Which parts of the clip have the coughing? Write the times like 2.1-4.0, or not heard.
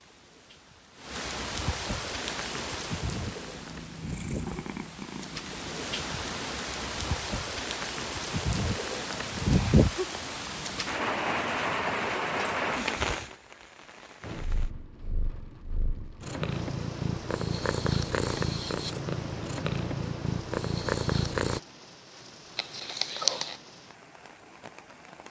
22.6-23.6.